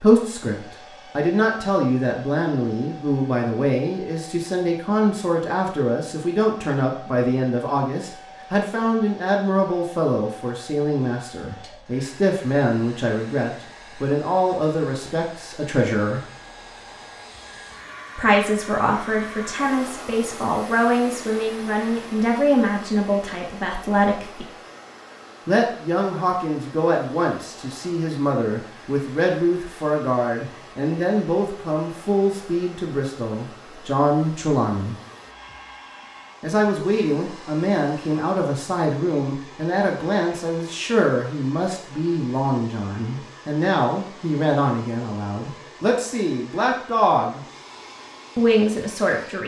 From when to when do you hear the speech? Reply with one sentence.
You can hear the speech from 0.0 to 16.2 s, from 18.1 to 24.4 s, from 25.4 to 35.0 s, from 36.4 to 47.4 s and from 48.4 to 49.4 s.